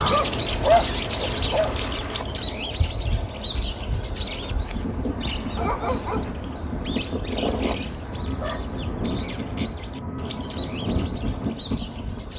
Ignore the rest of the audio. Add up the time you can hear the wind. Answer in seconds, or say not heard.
8 s.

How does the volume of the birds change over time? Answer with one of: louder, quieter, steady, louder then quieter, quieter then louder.
quieter.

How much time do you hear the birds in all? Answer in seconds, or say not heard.
12 s.